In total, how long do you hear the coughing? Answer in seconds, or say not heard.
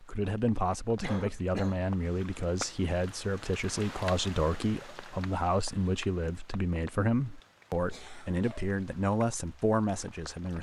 2 s.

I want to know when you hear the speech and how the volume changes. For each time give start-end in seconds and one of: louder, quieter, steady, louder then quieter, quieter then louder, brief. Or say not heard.
0.0-10.5 steady.